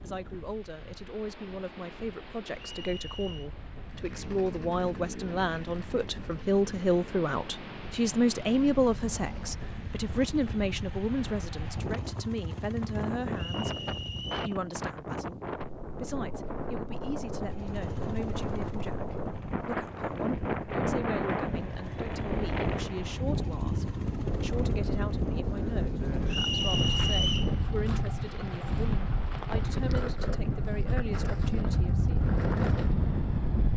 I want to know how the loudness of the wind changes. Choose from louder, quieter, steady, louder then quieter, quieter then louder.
louder.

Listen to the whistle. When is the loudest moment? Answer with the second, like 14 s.
27 s.